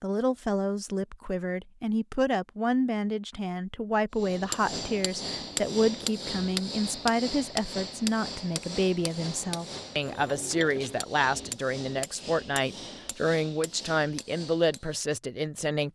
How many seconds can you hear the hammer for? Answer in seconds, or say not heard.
11 s.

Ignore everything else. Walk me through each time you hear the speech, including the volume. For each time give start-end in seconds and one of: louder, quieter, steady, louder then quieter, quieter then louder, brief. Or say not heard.
0.0-15.9 steady.